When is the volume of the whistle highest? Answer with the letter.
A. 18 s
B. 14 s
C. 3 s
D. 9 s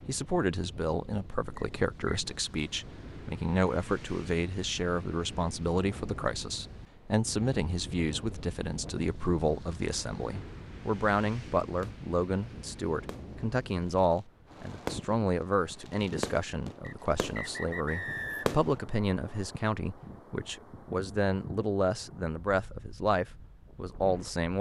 A.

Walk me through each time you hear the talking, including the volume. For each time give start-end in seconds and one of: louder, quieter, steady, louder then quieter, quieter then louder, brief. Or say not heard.
0.1-24.5 steady.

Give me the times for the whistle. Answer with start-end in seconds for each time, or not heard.
1.6-2.3, 16.8-18.6.